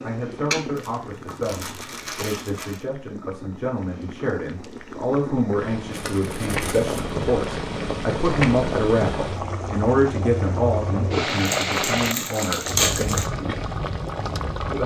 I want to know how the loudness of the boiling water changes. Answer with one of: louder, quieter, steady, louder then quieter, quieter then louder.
louder.